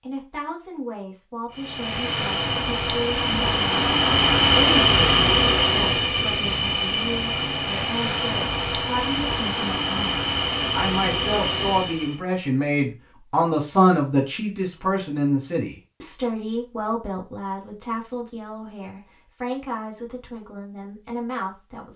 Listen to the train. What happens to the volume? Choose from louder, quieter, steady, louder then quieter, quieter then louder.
louder then quieter.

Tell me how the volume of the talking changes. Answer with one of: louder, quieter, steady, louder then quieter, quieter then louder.
louder then quieter.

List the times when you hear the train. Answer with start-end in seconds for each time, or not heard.
1.5-12.2.